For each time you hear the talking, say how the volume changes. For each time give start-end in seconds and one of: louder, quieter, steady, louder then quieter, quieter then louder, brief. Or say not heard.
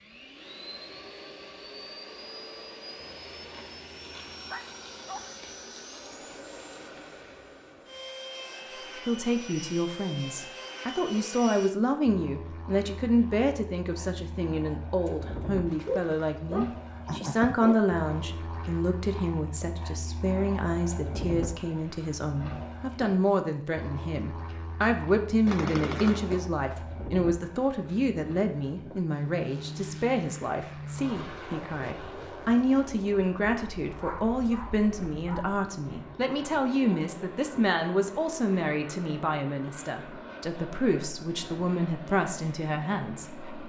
9.1-43.5 steady.